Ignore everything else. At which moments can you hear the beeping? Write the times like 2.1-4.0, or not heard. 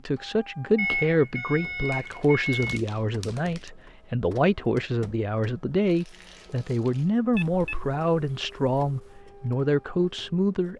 0.8-2.8, 7.3-9.2.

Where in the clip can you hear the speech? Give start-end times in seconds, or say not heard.
0.1-10.7.